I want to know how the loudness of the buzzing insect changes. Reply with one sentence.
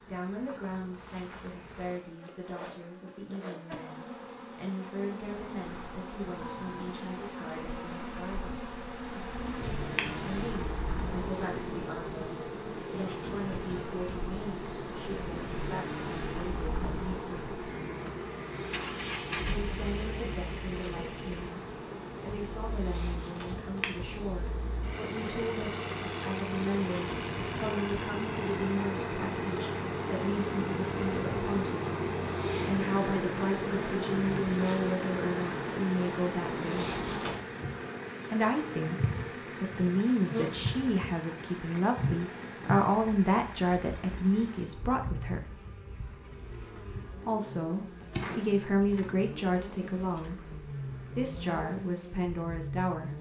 The volume of the buzzing insect goes up, then down.